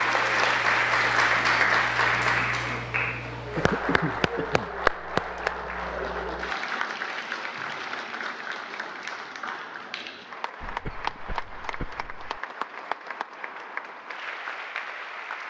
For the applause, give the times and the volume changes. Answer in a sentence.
You can hear the applause from 0.0 to 15.4 s, getting quieter.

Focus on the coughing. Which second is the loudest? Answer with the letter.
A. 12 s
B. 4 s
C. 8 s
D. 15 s
B.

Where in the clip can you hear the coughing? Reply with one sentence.
The coughing can be heard from 3.5 to 4.7 s and from 10.6 to 12.4 s.